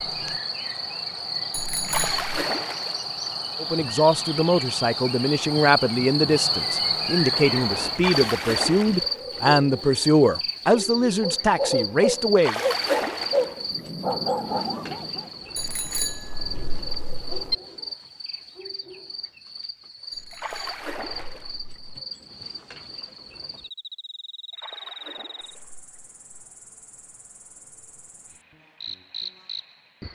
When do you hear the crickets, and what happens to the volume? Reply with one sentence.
You can hear the crickets from 0.0 to 30.1 s, getting quieter.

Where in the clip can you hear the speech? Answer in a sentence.
You can hear the speech from 3.6 to 12.6 s.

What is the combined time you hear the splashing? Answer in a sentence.
You can hear the splashing for 7 seconds altogether.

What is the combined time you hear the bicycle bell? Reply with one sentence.
The bicycle bell can be heard for 5 seconds in total.